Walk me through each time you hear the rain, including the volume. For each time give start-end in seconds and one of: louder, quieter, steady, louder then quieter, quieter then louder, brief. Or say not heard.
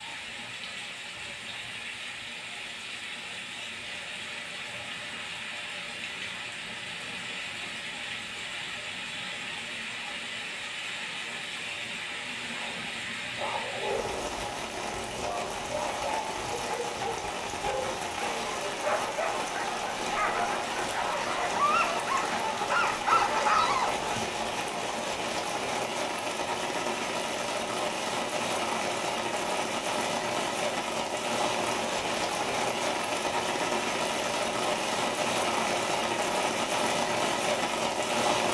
0.0-38.4 louder.